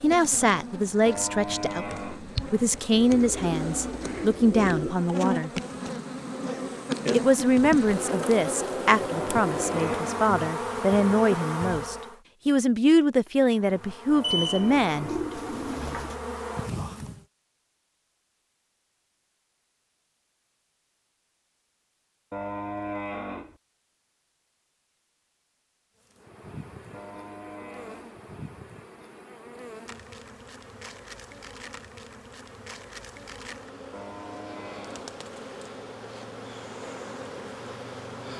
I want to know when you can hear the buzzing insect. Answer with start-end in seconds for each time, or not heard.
0.0-12.2, 13.6-17.2, 26.0-38.3.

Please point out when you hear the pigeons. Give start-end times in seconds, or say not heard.
2.9-5.0, 14.2-16.1, 34.8-35.7.